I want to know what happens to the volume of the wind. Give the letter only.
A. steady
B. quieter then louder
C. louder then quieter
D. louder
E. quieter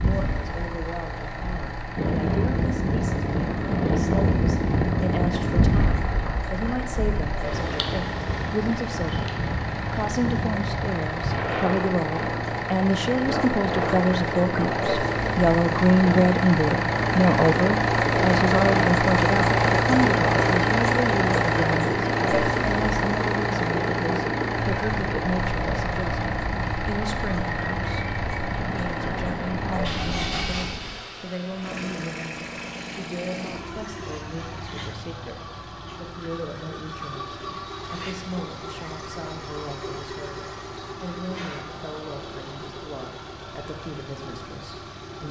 E.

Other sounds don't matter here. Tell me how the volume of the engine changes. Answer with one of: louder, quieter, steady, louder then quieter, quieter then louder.
louder then quieter.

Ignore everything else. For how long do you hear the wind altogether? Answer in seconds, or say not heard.
31 s.